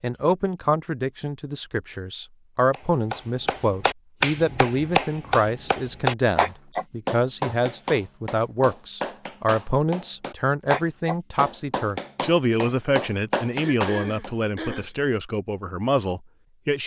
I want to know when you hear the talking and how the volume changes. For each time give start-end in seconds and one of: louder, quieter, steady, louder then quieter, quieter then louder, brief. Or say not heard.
0.0-16.8 steady.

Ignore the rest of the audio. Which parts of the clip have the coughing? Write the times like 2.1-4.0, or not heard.
13.5-14.9.